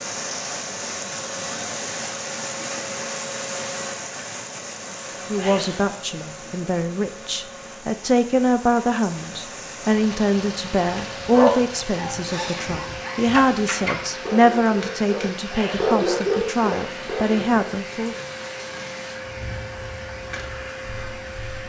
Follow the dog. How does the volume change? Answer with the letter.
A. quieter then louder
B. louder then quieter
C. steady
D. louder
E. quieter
D.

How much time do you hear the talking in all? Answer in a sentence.
You can hear the talking for 13 seconds altogether.